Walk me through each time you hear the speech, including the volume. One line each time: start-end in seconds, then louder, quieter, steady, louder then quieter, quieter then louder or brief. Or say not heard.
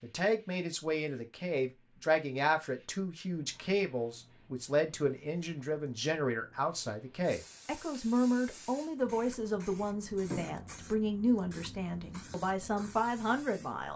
0.0-13.9 steady.